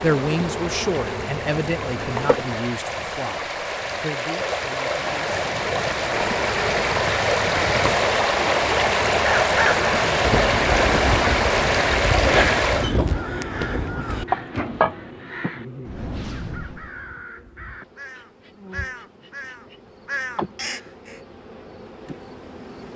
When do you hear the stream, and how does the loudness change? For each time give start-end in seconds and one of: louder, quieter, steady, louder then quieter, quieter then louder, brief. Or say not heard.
0.0-12.9 louder.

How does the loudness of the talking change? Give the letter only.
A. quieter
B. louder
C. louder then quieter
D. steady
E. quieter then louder
A.